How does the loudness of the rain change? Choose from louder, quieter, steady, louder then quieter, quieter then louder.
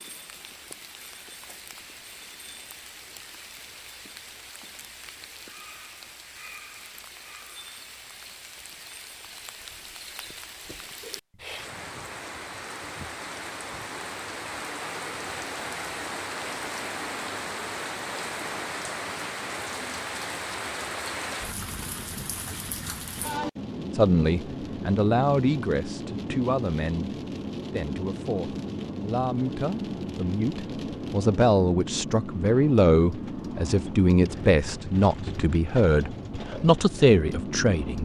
louder.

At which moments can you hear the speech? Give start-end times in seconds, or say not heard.
23.9-38.0.